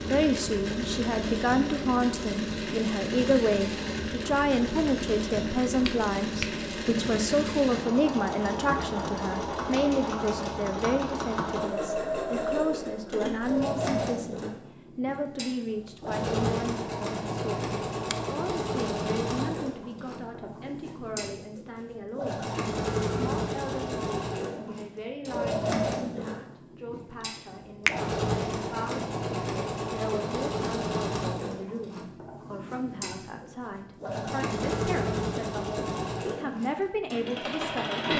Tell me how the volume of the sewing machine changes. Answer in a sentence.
The loudness of the sewing machine stays about the same.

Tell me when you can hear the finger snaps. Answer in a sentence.
The finger snaps can be heard from 5.7 to 6.7 s.